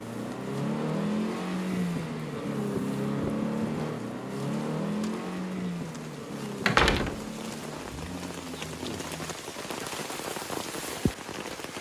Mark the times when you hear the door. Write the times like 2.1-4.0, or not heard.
6.7-7.8.